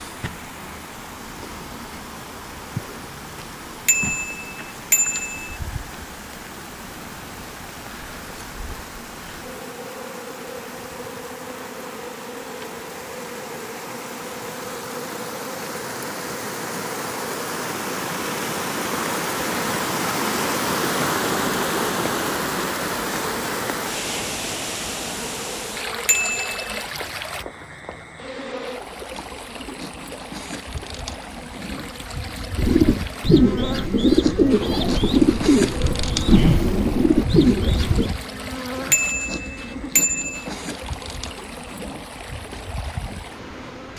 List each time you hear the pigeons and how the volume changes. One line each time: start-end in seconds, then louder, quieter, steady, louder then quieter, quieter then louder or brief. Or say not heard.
32.5-38.1 steady.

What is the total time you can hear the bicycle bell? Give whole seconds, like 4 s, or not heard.
4 s.